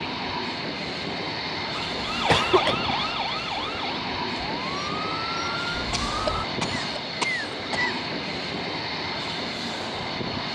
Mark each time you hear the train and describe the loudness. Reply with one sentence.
You can hear the train from 0.0 to 10.4 s, at a steady volume.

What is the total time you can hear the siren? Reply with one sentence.
You can hear the siren for 5 seconds altogether.